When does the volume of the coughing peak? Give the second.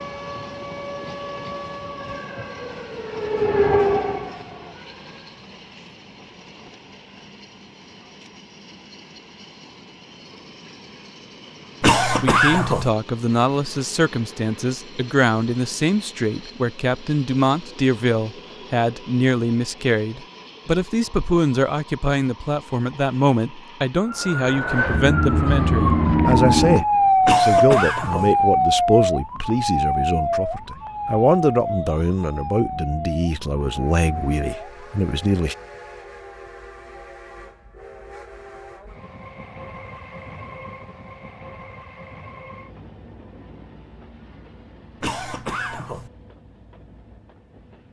12 s.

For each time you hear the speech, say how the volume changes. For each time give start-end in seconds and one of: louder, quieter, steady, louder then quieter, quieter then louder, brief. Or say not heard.
12.1-35.5 steady.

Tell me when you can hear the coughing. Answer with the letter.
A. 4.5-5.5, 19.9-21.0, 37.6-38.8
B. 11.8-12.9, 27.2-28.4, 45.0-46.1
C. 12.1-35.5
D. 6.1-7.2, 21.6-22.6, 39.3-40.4
B.